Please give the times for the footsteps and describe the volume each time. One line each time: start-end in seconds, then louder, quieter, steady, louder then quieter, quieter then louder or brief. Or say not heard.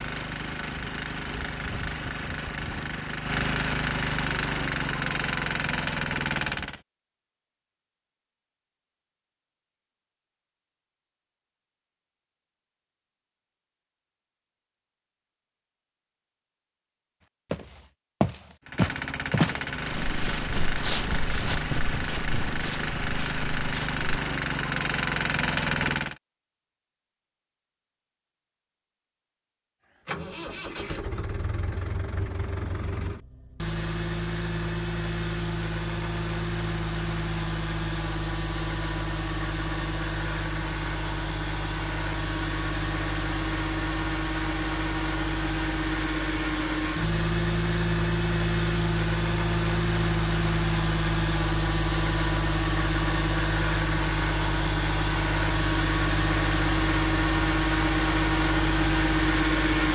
17.5-24.0 quieter.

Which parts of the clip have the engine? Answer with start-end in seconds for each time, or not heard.
0.0-6.8, 18.6-26.1, 30.1-59.9.